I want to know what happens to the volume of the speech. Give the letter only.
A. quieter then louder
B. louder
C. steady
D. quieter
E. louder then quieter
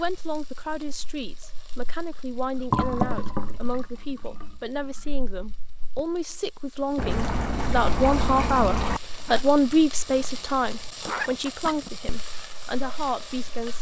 E.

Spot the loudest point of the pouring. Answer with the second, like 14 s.
3 s.